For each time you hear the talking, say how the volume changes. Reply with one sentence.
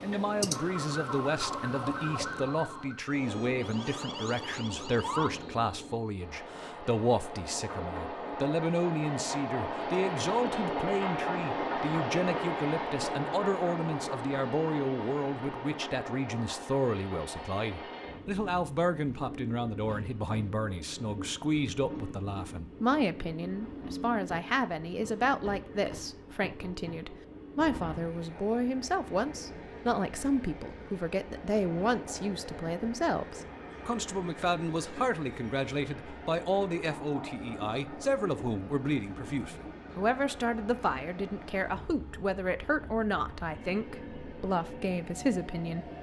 The talking can be heard from 0.0 to 45.9 s, at a steady volume.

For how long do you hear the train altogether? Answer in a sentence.
You can hear the train for 46 seconds altogether.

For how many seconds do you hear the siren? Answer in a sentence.
You can hear the siren for 5 seconds altogether.